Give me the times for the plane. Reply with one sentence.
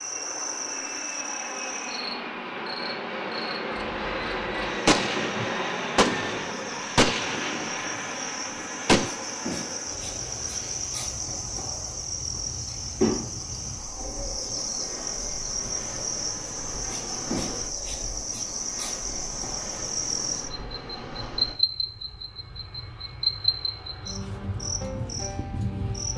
The plane can be heard from 0.0 to 26.1 s.